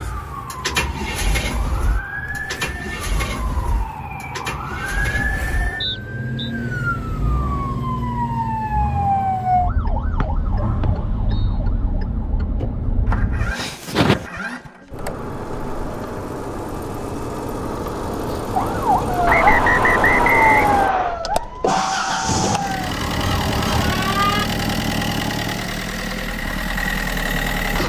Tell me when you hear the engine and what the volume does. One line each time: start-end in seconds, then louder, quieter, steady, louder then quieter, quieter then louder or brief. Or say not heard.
0.0-27.8 quieter then louder.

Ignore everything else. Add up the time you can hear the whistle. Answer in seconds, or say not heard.
4 s.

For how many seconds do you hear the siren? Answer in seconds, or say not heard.
20 s.